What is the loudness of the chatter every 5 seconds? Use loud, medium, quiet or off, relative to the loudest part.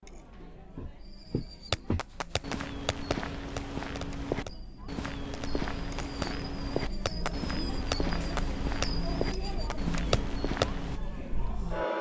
quiet, loud, loud.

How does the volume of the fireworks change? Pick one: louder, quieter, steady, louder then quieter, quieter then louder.
quieter then louder.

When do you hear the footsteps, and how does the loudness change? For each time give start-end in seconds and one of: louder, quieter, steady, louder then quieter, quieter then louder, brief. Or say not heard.
0.8-11.0 steady.